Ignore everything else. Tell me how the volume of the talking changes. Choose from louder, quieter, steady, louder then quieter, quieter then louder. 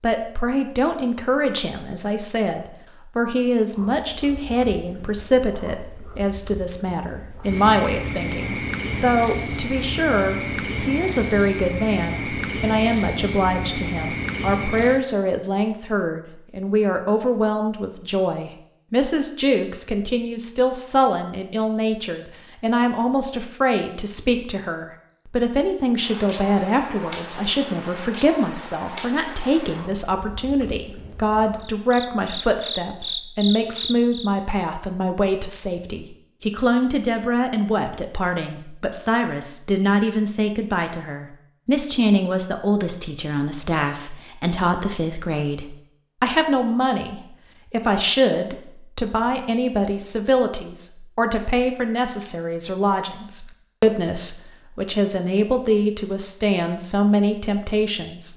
steady.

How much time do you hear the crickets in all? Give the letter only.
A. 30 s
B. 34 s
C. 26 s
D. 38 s
B.